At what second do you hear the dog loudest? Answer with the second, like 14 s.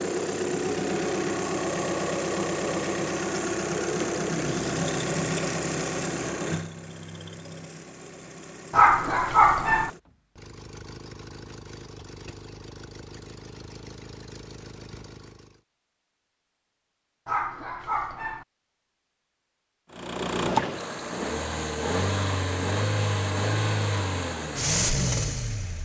9 s.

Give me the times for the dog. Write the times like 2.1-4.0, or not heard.
8.7-9.9, 17.2-18.4.